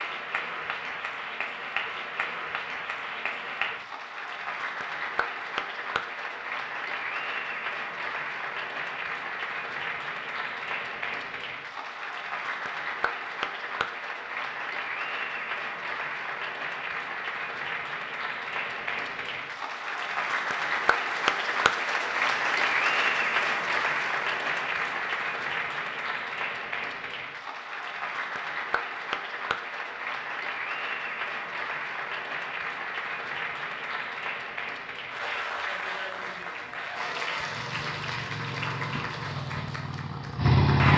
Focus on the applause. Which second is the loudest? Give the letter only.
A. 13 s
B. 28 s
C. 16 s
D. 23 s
D.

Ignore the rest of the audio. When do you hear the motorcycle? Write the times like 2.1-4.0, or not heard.
37.4-40.9.